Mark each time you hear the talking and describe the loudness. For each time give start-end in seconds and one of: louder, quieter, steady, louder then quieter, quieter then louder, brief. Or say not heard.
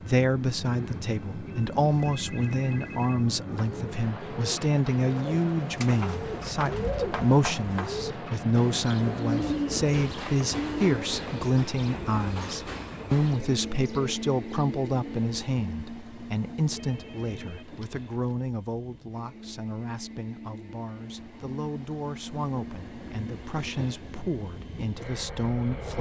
0.0-25.9 quieter.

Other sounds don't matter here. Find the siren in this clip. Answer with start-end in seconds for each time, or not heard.
not heard.